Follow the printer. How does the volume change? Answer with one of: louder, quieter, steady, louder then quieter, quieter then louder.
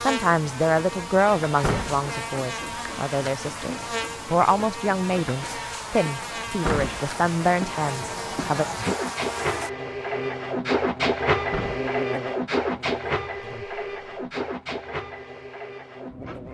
louder then quieter.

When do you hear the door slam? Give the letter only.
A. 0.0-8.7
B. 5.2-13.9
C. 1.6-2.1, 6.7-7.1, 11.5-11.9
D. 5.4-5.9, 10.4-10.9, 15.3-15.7
C.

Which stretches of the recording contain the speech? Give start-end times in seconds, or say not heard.
0.0-8.7.